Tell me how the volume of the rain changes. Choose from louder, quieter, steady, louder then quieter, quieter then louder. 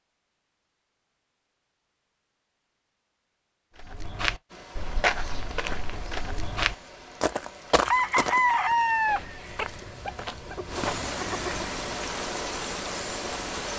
louder.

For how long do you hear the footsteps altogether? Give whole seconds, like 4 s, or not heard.
7 s.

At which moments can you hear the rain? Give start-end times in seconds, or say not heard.
4.5-13.7.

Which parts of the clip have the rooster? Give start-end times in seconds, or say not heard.
7.8-11.8.